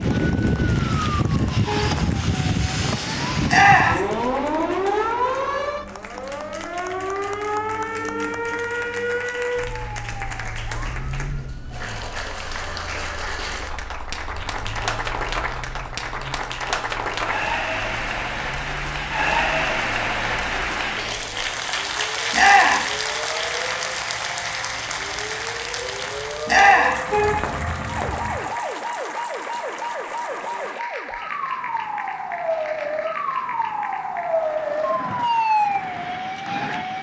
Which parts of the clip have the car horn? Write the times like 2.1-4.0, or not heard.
1.6-2.0, 27.1-28.4.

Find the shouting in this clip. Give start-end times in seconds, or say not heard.
3.5-4.0, 22.3-22.9, 26.4-27.0.